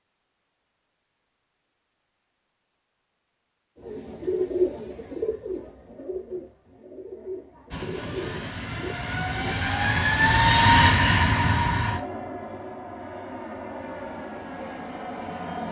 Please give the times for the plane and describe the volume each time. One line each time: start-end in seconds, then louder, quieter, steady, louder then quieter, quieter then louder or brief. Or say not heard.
7.7-15.6 louder then quieter.